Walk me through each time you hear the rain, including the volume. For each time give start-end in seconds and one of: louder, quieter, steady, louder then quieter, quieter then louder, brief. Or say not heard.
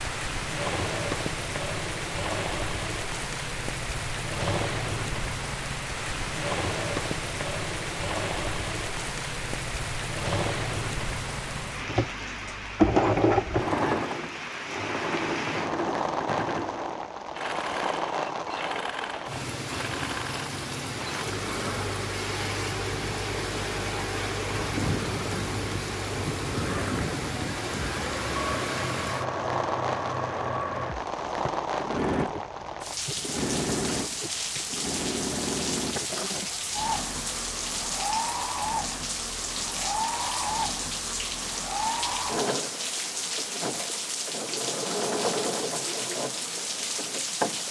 0.0-47.6 steady.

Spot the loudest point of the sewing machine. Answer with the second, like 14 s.
13 s.